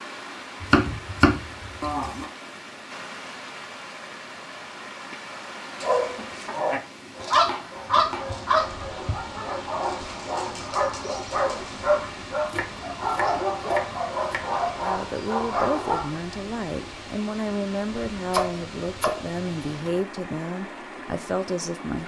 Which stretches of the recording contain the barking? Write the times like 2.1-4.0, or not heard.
5.8-16.1.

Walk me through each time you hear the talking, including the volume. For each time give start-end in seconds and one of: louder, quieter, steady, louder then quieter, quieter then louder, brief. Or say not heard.
14.8-22.0 steady.